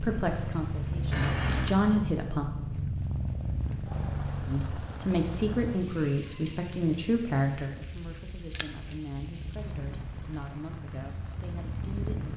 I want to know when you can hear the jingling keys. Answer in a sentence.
You can hear the jingling keys from 1.1 to 1.8 s and from 7.8 to 10.5 s.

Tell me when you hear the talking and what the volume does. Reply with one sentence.
The talking can be heard briefly from 0.0 to 2.5 s; and from 4.5 to 12.3 s, getting quieter.